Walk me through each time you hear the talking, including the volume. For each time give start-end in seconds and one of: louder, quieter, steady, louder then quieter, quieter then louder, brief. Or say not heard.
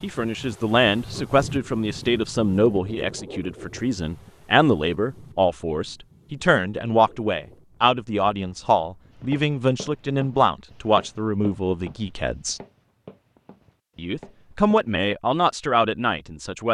0.0-12.6 steady
13.9-16.6 brief.